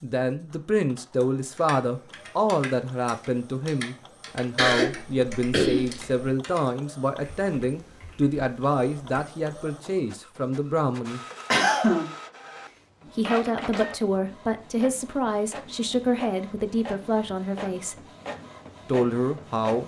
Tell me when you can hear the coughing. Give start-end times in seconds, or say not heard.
4.5-6.0, 11.5-12.1.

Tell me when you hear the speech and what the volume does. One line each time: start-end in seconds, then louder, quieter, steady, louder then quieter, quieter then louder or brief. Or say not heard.
0.0-11.2 steady
13.2-17.9 steady
18.9-19.8 brief.